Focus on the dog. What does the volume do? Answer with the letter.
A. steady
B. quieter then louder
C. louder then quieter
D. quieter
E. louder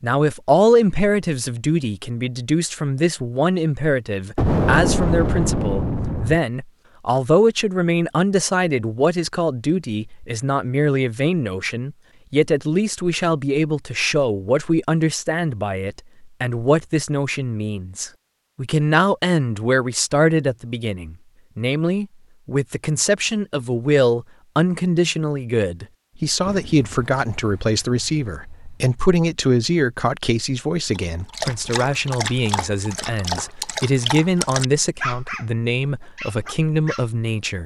D.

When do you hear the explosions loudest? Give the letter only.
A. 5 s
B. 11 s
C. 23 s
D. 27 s
A.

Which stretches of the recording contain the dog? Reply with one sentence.
You can hear the dog from 30.9 to 37.0 s.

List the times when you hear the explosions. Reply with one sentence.
The explosions can be heard from 4.3 to 6.4 s and from 26.4 to 28.9 s.